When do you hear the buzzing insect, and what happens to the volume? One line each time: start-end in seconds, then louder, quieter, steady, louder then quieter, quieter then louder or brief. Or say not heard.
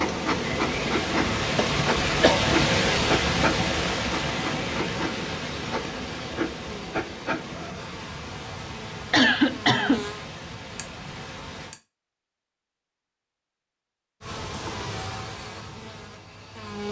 0.0-11.8 quieter
14.2-16.8 brief.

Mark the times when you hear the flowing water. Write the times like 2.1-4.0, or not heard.
0.0-11.8.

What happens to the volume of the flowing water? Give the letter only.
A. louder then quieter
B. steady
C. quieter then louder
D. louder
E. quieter
E.